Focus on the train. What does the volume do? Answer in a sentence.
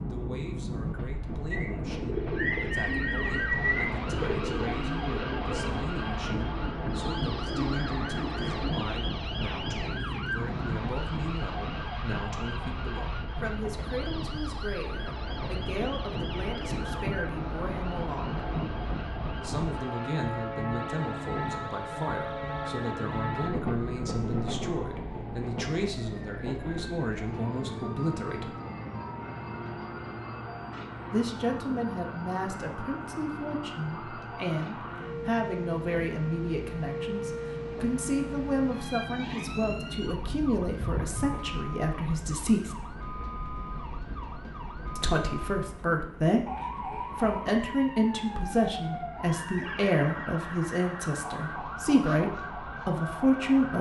The volume of the train goes down.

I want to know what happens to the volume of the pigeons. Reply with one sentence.
The volume of the pigeons goes down.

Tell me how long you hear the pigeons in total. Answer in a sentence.
The pigeons can be heard for 7 seconds in total.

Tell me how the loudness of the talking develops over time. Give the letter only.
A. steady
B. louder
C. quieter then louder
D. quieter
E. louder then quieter
B.